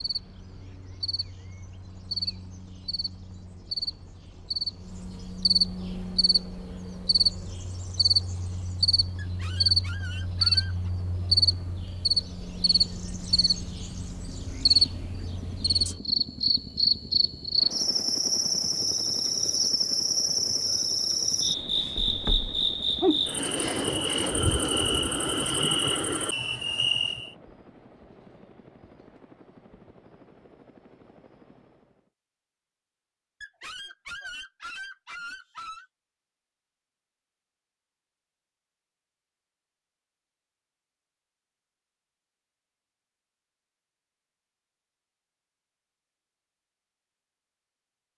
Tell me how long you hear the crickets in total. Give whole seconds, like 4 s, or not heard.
27 s.